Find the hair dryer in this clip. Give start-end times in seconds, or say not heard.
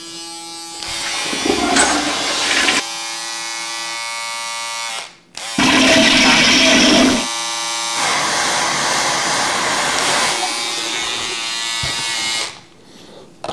7.9-10.4.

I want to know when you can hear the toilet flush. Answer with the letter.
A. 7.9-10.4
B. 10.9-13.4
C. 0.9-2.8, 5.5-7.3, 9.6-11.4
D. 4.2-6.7
C.